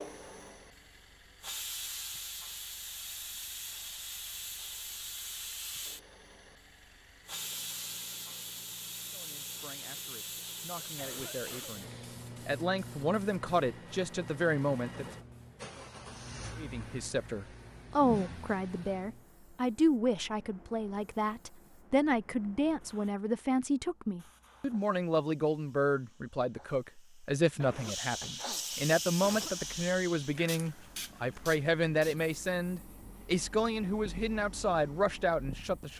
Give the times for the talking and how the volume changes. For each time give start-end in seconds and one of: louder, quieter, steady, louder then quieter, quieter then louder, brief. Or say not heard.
9.1-15.1 louder
16.6-35.9 steady.